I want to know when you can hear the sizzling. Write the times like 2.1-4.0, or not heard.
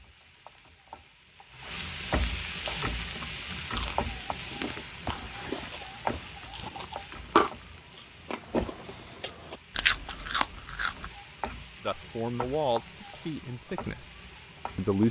0.0-15.0.